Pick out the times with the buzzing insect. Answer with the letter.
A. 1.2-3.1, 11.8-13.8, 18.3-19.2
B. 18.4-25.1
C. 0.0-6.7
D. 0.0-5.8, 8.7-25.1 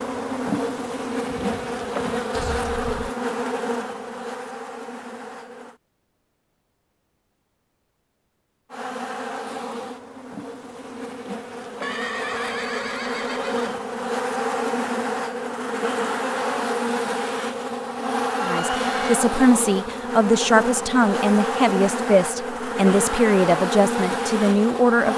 D.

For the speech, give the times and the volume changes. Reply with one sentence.
The speech can be heard from 18.4 to 25.1 s, at a steady volume.